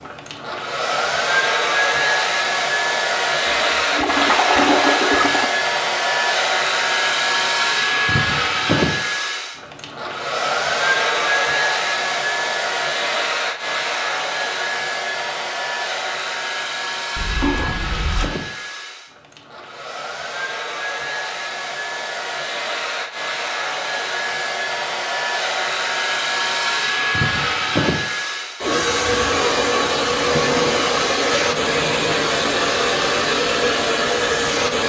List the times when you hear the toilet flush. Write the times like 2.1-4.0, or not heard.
3.5-5.5, 17.1-18.3, 30.3-32.4.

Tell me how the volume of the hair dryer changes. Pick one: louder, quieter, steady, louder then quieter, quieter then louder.
quieter then louder.